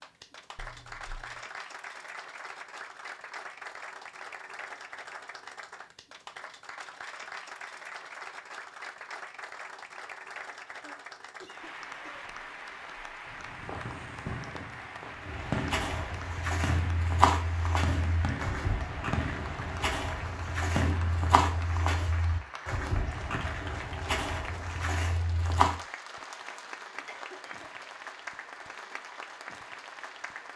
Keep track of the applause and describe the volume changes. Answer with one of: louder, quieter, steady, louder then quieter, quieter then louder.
steady.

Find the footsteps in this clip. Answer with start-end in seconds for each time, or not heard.
15.2-25.8.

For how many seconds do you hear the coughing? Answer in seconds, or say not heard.
3 s.